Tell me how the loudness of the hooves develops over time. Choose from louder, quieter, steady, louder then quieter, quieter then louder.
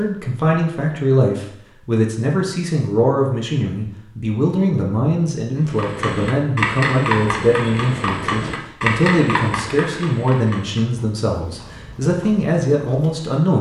quieter.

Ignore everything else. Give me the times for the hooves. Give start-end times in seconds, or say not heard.
5.7-13.3.